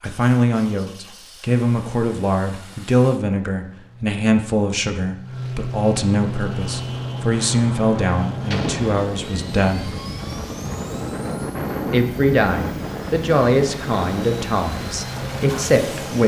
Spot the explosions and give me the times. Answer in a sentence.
The explosions can be heard from 8.5 to 8.9 s.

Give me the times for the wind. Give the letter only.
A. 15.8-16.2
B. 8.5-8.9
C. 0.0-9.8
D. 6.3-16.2
D.